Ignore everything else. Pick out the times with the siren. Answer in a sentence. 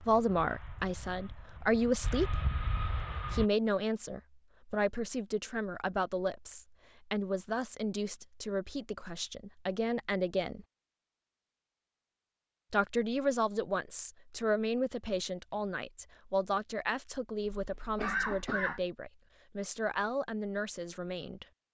The siren can't be heard in this clip.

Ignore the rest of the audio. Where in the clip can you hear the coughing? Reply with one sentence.
You can hear the coughing from 17.6 to 18.8 s.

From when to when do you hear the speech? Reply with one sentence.
The speech can be heard from 0.0 to 2.5 s, from 3.3 to 10.7 s and from 12.7 to 21.4 s.